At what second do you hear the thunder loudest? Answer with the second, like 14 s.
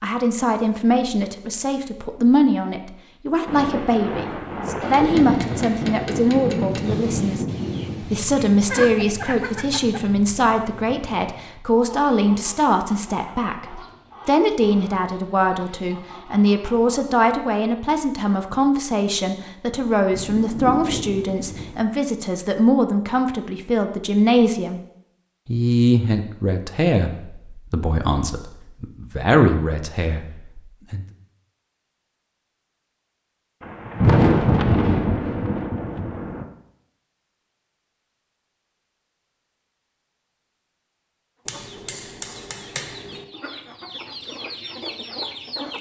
34 s.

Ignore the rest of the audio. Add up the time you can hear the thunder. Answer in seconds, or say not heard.
9 s.